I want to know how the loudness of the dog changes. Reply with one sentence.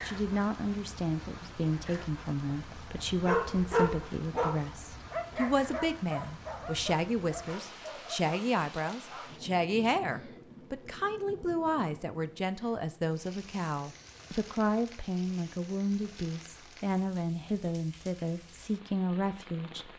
The loudness of the dog goes down.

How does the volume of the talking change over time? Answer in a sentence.
The loudness of the talking stays about the same.